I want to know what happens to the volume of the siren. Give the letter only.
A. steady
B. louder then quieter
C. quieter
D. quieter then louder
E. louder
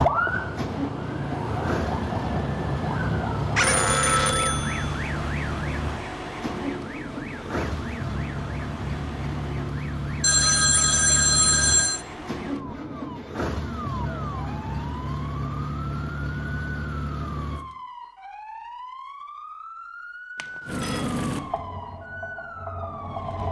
C.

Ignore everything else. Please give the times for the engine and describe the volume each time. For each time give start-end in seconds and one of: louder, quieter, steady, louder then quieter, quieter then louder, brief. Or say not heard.
0.0-17.6 steady
20.6-23.4 brief.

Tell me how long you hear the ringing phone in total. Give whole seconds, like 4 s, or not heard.
4 s.